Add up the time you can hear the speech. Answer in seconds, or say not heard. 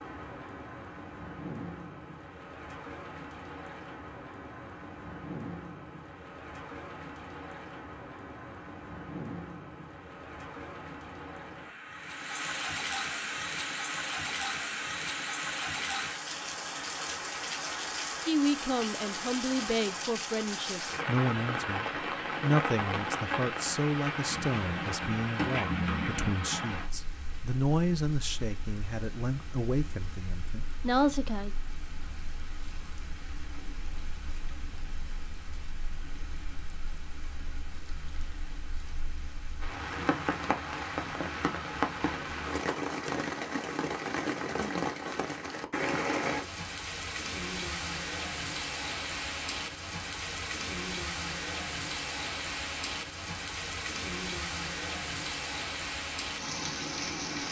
13 s.